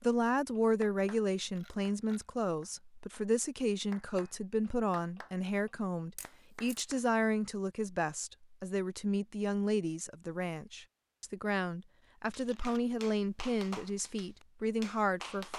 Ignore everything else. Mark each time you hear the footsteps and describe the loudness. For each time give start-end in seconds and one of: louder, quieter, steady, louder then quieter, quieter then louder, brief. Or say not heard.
not heard.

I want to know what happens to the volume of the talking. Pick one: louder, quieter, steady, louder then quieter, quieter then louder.
steady.